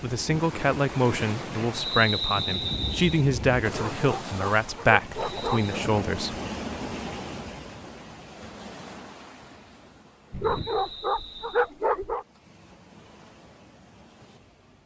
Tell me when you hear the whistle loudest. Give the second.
2 s.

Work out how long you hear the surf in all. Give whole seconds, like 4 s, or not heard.
15 s.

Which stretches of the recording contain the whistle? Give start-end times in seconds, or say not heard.
1.7-3.1, 5.2-5.7, 10.4-11.7.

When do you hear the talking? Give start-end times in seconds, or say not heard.
0.0-6.3.